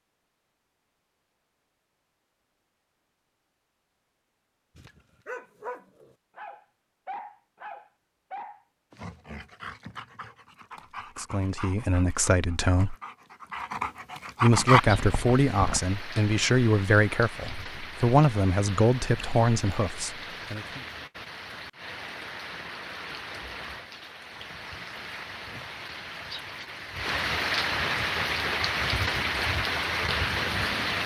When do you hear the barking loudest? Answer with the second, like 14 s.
15 s.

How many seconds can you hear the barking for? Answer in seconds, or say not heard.
11 s.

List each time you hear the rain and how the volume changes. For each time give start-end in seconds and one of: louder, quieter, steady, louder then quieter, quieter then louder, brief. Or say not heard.
14.6-31.0 louder.